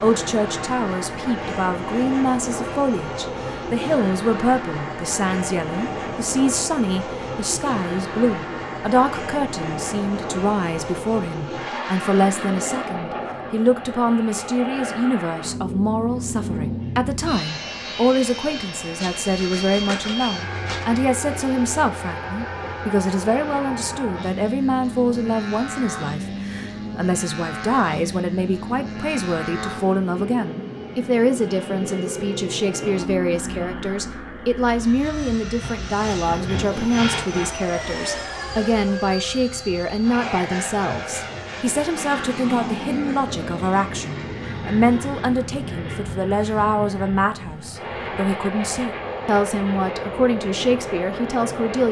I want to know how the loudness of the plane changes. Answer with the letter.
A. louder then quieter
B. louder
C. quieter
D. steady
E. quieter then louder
D.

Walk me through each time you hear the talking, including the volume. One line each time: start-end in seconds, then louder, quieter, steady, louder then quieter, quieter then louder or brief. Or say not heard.
0.0-51.8 steady.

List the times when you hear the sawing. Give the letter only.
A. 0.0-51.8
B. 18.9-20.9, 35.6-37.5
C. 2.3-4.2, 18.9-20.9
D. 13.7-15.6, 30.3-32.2
B.